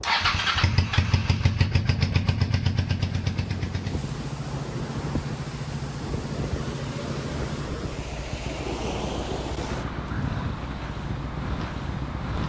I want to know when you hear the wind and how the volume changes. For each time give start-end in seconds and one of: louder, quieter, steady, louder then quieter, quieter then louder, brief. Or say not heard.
0.0-12.4 louder.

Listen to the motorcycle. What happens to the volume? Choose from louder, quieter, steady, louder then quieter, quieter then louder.
quieter.